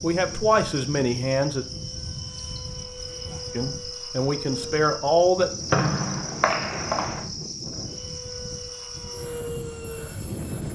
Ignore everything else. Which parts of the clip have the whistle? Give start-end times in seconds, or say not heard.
5.7-7.2.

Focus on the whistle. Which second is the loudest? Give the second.
6 s.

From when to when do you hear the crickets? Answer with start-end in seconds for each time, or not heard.
0.0-10.7.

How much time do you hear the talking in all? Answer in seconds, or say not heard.
4 s.